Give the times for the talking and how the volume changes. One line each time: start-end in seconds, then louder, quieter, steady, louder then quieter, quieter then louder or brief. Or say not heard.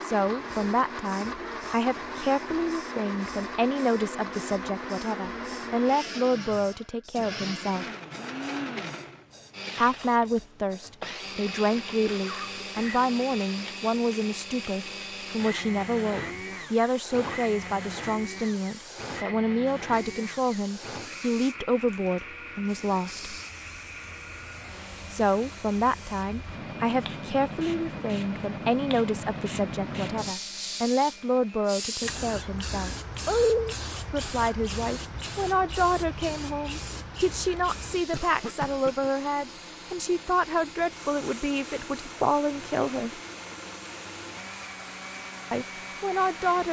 0.0-7.8 steady
9.8-23.3 steady
25.1-43.1 steady
45.5-46.6 brief.